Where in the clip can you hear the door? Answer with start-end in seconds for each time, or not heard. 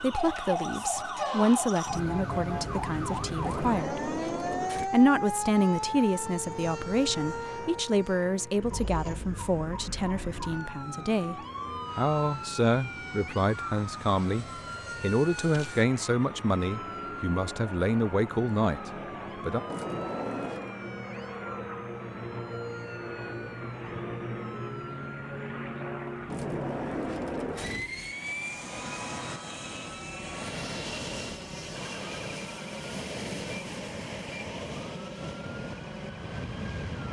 3.4-4.9, 19.6-20.7, 26.2-27.9.